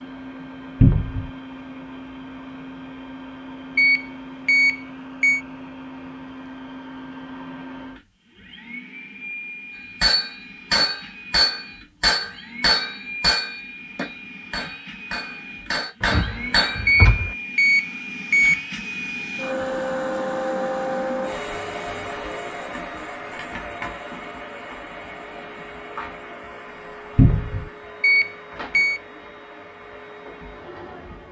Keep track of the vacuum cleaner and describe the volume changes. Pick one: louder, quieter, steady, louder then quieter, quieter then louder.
louder then quieter.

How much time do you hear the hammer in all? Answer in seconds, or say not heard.
7 s.